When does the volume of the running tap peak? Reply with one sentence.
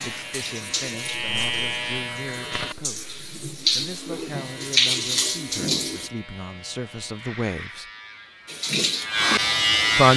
The volume of the running tap peaks at 5 seconds.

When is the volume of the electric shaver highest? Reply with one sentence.
The volume of the electric shaver peaks at 10 seconds.